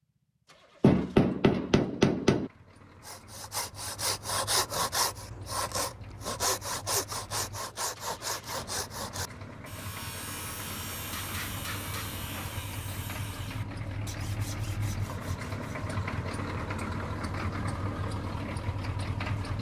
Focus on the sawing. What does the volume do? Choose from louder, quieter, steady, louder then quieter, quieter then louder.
quieter.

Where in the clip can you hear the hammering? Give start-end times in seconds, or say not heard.
0.8-2.5, 10.6-12.6.